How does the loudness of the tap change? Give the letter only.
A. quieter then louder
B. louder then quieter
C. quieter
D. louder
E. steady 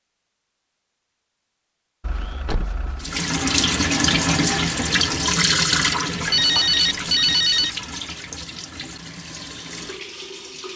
C.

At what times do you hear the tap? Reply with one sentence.
You can hear the tap from 3.0 to 10.7 s.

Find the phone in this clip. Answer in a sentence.
You can hear the phone from 2.0 to 3.2 s and from 6.2 to 7.7 s.